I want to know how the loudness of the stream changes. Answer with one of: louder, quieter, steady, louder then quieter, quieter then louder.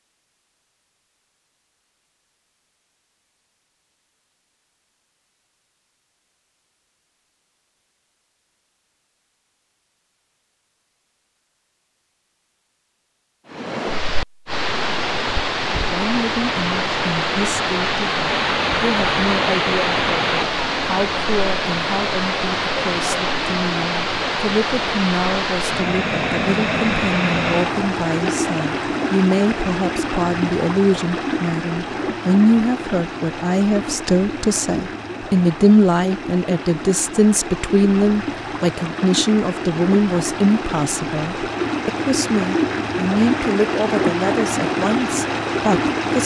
quieter then louder.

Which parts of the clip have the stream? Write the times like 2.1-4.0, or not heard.
13.5-46.2.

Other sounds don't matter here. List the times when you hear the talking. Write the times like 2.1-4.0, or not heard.
15.9-46.2.